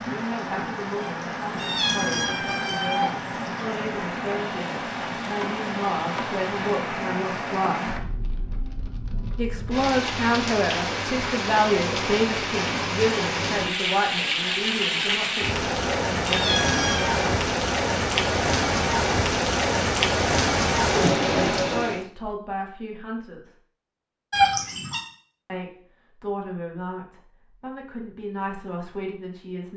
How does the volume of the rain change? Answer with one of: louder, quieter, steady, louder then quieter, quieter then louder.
louder.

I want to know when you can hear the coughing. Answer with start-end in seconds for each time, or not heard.
not heard.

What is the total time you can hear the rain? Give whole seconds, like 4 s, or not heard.
22 s.